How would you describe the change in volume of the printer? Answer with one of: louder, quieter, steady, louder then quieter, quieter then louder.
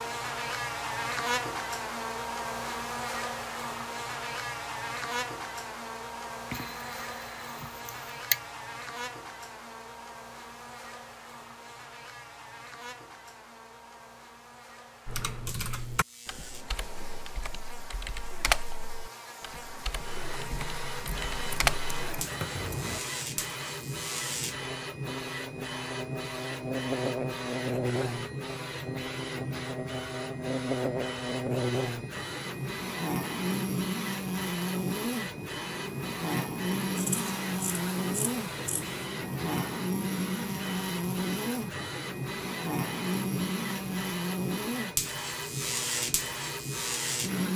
steady.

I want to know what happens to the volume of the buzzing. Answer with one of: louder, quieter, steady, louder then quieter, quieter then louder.
quieter then louder.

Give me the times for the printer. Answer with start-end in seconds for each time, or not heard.
19.9-47.5.